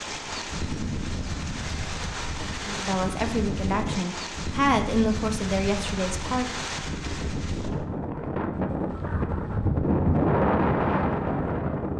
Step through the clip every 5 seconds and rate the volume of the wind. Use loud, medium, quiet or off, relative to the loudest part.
medium, medium, loud.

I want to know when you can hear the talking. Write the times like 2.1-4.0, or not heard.
2.6-6.5.